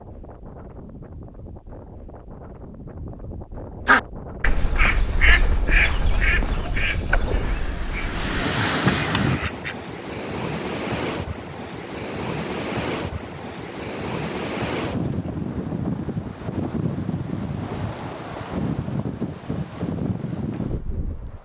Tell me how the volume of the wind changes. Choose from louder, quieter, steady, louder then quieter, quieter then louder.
louder.